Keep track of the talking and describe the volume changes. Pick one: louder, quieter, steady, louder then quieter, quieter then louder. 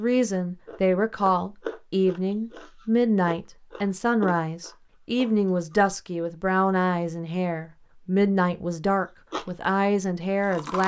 steady.